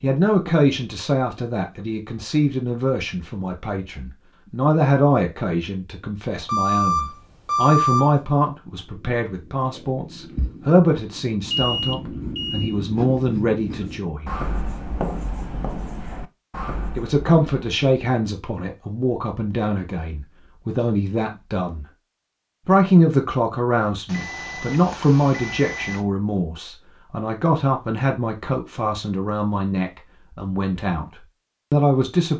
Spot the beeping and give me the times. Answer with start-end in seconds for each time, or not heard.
6.5-8.2, 11.5-12.8, 24.1-26.0.